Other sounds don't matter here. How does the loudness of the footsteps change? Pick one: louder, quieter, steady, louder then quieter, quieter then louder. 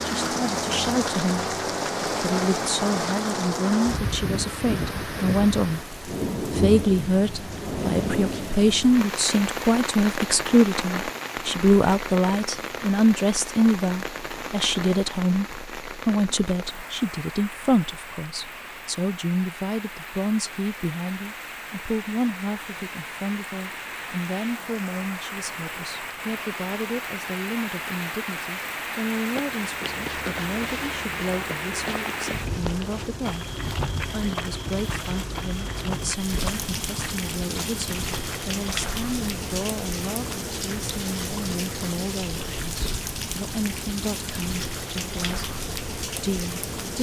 steady.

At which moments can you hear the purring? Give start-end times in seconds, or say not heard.
not heard.